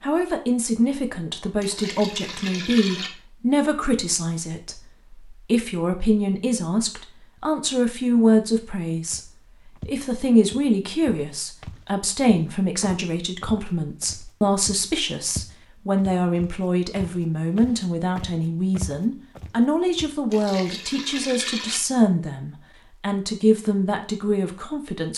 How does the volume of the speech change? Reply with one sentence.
The loudness of the speech stays about the same.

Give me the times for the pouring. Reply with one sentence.
The pouring can be heard from 1.6 to 3.1 s and from 20.3 to 21.8 s.